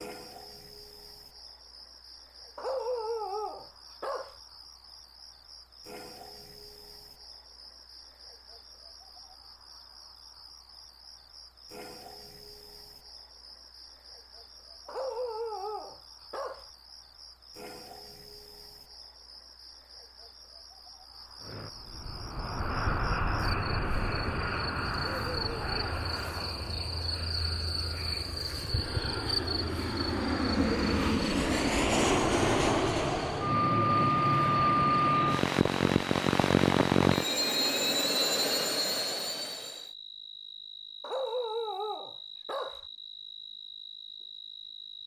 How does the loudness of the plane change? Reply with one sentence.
The loudness of the plane goes down, then up.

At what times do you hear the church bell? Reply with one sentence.
You can't hear the church bell here.